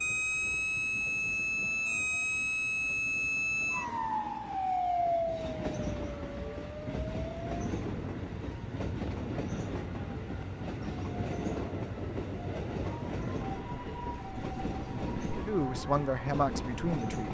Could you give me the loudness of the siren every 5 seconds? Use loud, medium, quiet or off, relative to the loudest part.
loud, medium, quiet, quiet.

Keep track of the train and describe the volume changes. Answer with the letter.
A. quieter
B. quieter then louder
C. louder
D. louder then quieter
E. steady
C.